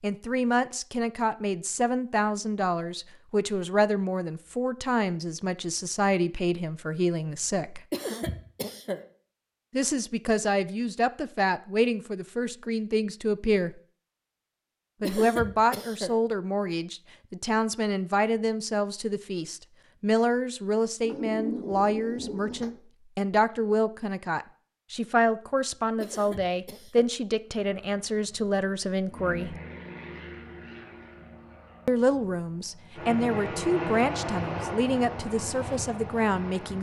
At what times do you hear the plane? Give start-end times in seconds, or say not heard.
27.4-36.7.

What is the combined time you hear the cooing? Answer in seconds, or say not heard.
2 s.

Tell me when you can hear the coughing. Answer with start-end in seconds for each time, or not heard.
7.9-9.1, 15.0-16.2, 26.0-27.1.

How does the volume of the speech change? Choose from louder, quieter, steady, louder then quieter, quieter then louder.
steady.